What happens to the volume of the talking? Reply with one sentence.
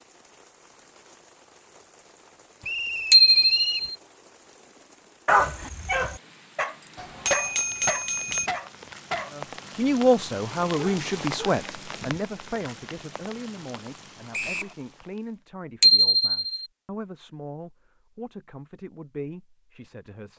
The loudness of the talking goes down.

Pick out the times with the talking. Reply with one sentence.
The talking can be heard from 9.3 to 20.3 s.